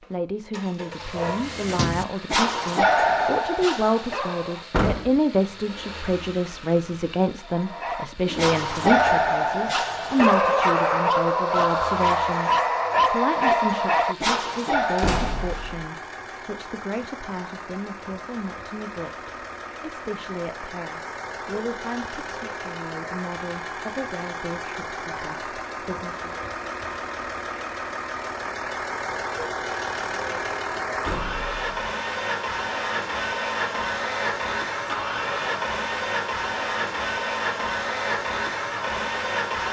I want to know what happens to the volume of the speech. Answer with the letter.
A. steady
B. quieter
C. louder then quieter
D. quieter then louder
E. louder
B.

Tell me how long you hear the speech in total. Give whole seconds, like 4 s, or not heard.
26 s.